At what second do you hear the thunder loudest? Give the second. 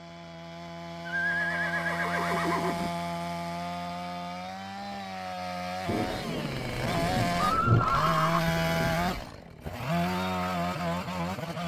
8 s.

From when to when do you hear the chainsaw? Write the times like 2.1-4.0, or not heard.
0.0-11.6.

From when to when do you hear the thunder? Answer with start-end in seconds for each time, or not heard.
5.8-9.3.